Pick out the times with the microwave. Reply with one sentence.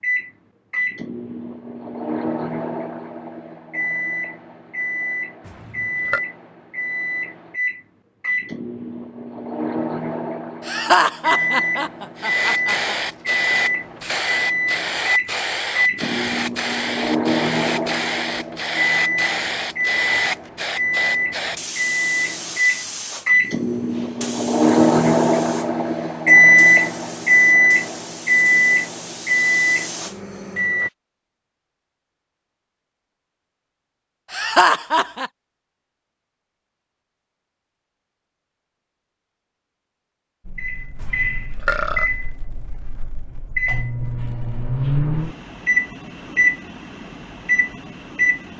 The microwave can be heard from 0.0 to 30.9 s and from 40.5 to 48.5 s.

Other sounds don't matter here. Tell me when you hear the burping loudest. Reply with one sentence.
The loudest moment of the burping is at 42 seconds.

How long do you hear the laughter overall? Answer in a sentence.
The laughter can be heard for 3 seconds in total.